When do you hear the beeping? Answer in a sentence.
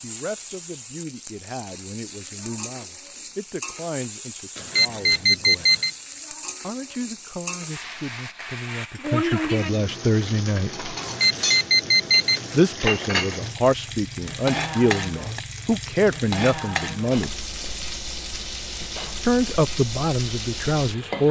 You can hear the beeping from 4.5 to 5.9 s and from 11.0 to 12.6 s.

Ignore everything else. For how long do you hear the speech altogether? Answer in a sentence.
The speech can be heard for 17 seconds in total.